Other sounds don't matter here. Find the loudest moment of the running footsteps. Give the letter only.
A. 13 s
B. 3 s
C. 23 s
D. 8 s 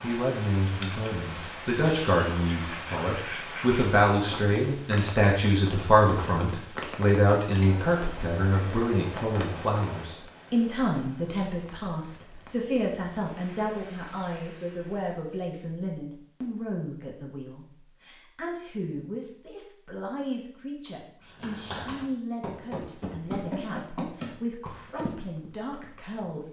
C.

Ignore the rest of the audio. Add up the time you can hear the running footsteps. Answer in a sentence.
The running footsteps can be heard for 5 seconds in total.